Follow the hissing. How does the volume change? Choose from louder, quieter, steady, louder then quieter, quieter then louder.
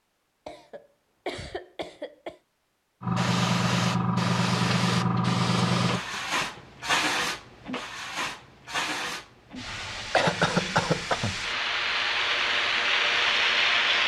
quieter then louder.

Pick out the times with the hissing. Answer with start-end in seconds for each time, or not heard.
3.0-14.0.